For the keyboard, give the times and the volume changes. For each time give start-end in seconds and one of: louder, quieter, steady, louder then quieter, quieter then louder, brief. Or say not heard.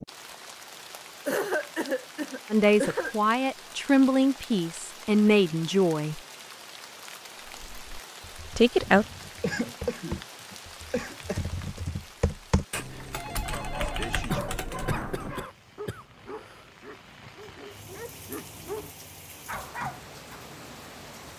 7.4-15.4 louder.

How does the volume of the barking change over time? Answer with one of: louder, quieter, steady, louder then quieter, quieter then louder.
quieter then louder.